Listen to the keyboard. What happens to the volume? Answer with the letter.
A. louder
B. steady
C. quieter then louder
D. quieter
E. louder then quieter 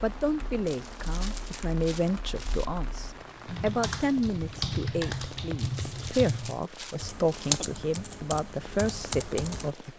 E.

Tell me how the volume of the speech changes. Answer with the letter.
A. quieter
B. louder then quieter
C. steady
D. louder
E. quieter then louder
C.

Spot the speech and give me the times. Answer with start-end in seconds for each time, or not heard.
0.0-9.9.